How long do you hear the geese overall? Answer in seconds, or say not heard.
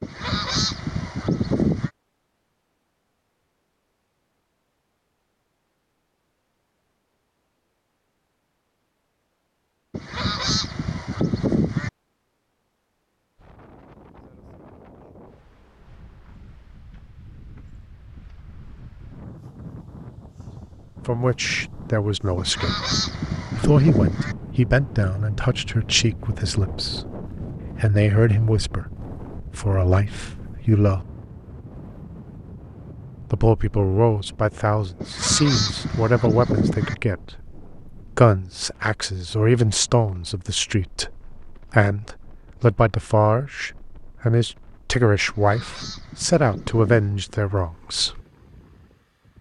10 s.